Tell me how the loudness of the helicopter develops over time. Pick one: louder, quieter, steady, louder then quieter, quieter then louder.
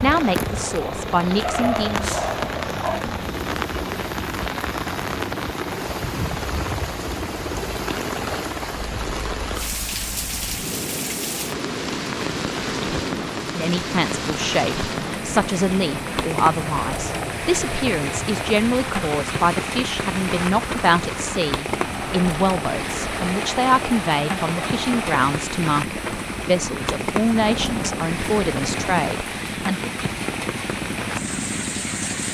steady.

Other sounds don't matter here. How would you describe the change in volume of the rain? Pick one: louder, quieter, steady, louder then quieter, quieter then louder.
steady.